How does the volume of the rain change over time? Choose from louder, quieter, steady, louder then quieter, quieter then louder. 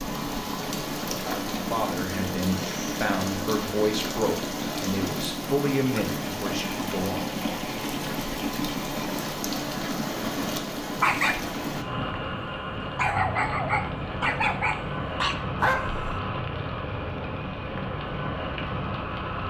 steady.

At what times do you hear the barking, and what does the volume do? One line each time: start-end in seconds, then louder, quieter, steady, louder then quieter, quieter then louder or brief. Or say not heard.
11.0-16.2 louder.